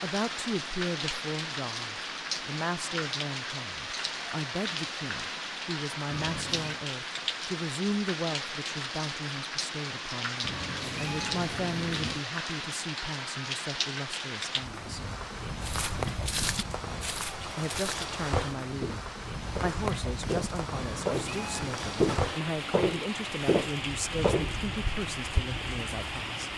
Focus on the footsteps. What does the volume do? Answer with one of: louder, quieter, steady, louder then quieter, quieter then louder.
louder.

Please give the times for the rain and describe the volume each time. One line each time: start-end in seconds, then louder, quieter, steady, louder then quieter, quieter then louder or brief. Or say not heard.
0.0-26.5 steady.